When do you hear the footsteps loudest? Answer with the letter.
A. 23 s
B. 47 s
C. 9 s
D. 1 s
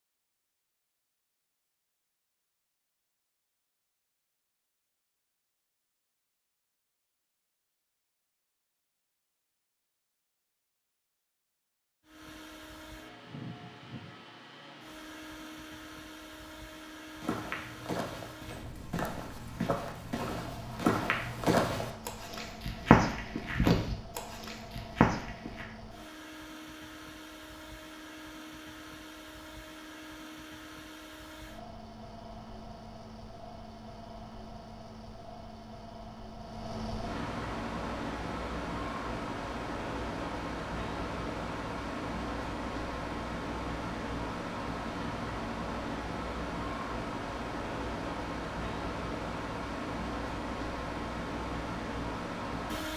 A.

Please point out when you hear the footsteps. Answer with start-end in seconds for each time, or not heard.
17.2-25.6.